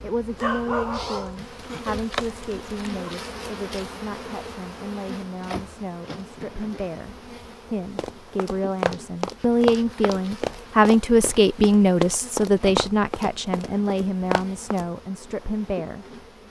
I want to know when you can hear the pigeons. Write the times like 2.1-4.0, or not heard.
not heard.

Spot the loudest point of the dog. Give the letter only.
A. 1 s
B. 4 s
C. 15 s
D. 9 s
A.